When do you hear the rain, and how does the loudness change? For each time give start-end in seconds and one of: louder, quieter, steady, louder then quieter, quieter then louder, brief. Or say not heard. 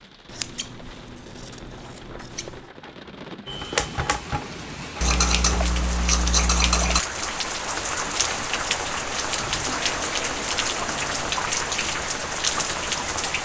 0.0-13.4 louder.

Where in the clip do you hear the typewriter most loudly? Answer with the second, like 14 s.
4 s.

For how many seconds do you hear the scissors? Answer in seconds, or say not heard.
6 s.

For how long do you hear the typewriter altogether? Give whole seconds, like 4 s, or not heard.
2 s.